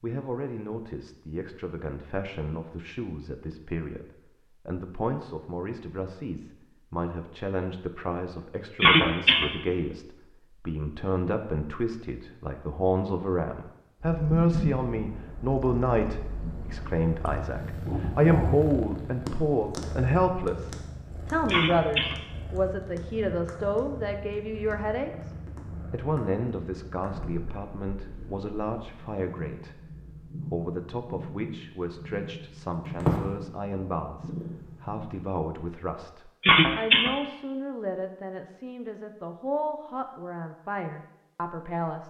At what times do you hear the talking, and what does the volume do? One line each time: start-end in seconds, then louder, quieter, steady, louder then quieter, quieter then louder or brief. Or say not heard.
0.0-25.3 louder
25.9-42.0 steady.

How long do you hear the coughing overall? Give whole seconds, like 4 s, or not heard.
2 s.